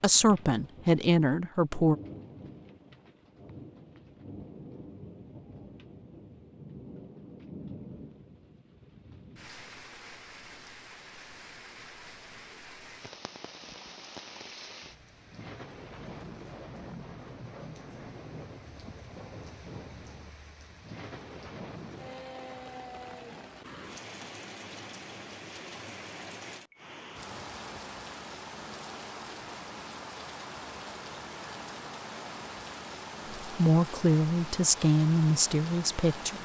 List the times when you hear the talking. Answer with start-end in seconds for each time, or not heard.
0.0-1.9, 33.5-36.3.